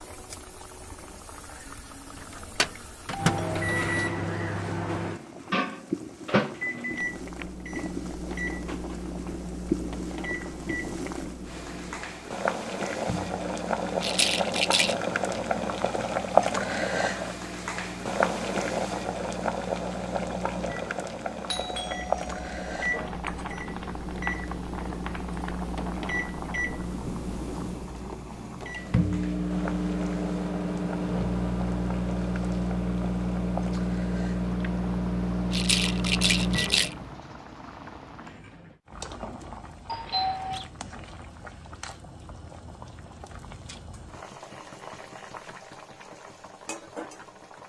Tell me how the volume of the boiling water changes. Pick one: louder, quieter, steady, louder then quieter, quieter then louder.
louder then quieter.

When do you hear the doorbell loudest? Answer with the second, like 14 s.
40 s.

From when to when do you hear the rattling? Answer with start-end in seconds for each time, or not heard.
14.0-14.9, 35.5-37.0.